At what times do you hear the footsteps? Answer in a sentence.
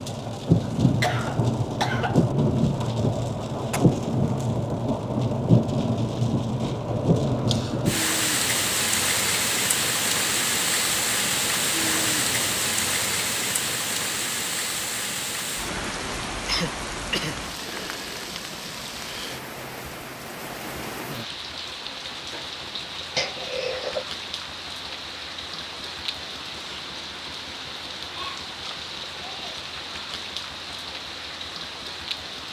You can't hear the footsteps here.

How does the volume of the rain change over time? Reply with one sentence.
The loudness of the rain goes down.